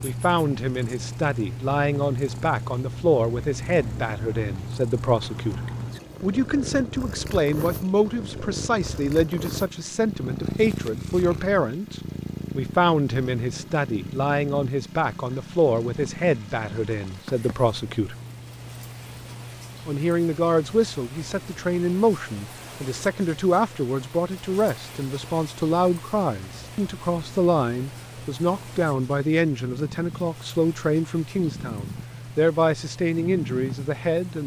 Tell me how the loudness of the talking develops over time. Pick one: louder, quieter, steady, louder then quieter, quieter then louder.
steady.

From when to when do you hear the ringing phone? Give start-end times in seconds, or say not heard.
not heard.